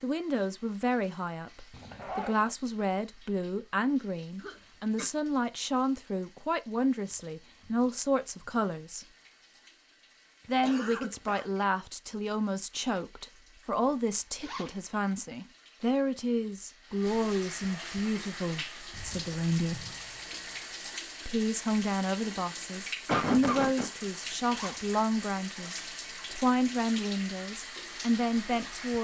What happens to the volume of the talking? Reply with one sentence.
The loudness of the talking stays about the same.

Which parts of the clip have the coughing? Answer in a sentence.
You can hear the coughing from 4.3 to 5.1 s, from 10.4 to 11.4 s and from 23.1 to 23.9 s.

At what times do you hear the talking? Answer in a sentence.
You can hear the talking from 0.0 to 9.1 s, from 10.4 to 19.9 s and from 21.2 to 28.9 s.